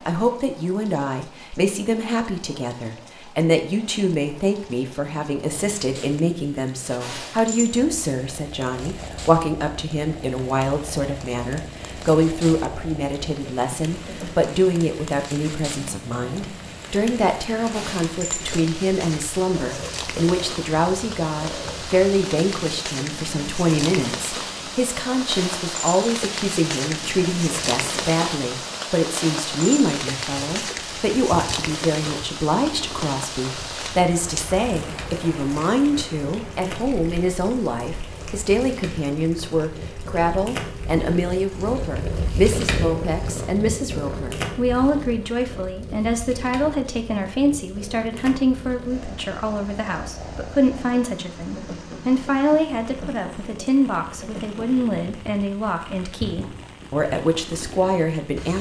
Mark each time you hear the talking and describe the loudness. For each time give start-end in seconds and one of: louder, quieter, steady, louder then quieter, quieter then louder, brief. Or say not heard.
0.1-58.5 steady.